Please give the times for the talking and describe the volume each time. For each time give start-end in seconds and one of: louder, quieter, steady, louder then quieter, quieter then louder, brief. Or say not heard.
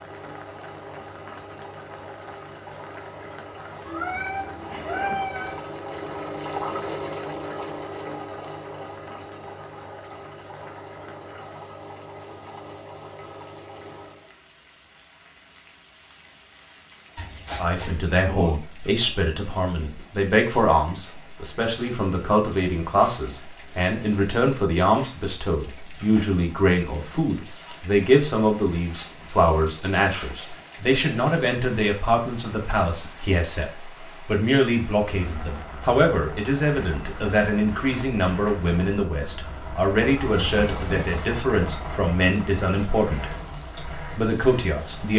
17.6-45.1 steady.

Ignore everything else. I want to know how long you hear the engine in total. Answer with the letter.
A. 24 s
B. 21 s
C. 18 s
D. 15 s
A.